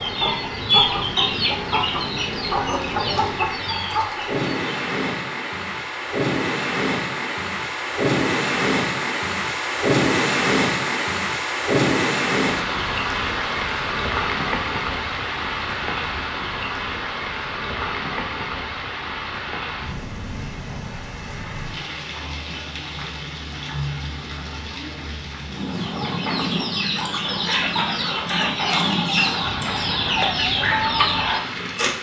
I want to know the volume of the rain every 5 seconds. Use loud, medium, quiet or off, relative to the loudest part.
medium, loud, loud, medium, medium, medium, medium.